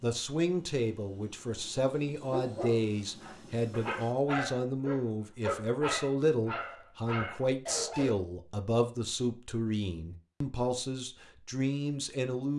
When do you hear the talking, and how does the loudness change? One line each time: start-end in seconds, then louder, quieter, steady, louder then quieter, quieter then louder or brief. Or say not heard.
0.0-12.5 steady.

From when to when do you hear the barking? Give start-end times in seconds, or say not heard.
2.2-8.2.